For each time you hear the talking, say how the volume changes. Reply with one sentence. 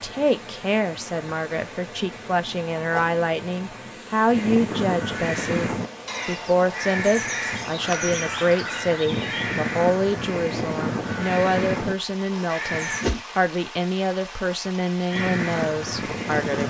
The talking can be heard from 0.0 to 16.6 s, at a steady volume.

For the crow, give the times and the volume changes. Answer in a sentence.
You can hear the crow from 4.2 to 13.1 s, at a steady volume; and briefly from 15.1 to 16.6 s.